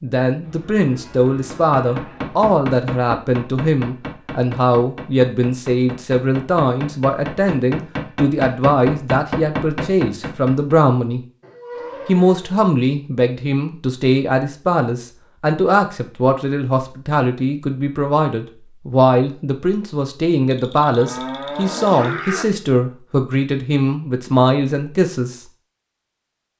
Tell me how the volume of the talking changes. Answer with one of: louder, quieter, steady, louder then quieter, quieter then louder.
steady.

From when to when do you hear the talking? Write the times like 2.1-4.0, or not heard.
0.0-11.2, 12.1-25.4.